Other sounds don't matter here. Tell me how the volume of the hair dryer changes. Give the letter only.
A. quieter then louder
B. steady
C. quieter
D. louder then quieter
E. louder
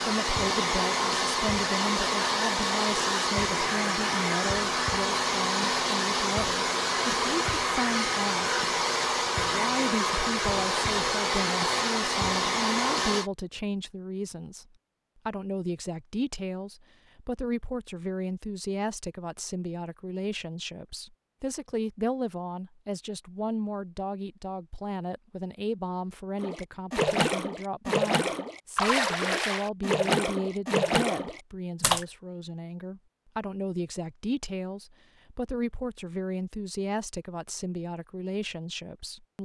B.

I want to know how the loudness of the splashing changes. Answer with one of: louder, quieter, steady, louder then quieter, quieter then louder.
steady.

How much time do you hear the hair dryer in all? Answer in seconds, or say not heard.
13 s.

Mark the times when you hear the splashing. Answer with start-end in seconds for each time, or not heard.
26.4-32.0.